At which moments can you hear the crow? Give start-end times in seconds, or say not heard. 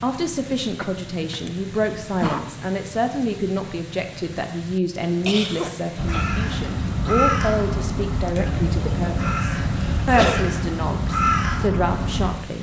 6.0-12.3.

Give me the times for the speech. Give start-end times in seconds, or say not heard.
0.0-12.5.